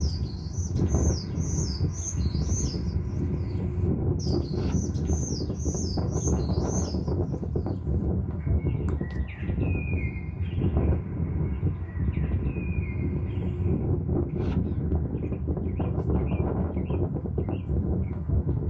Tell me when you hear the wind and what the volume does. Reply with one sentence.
You can hear the wind from 0.0 to 18.6 s, at a steady volume.